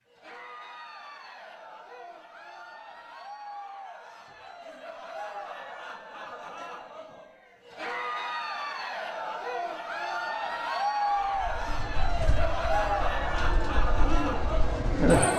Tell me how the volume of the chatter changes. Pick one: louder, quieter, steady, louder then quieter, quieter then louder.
louder.